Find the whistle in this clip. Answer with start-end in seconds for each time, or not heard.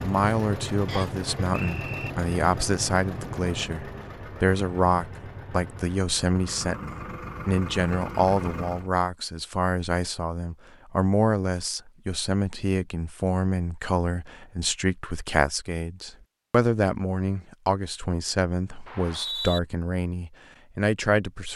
0.8-2.1, 18.9-19.6.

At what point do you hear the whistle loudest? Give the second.
19 s.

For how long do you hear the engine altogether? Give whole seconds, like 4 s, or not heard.
9 s.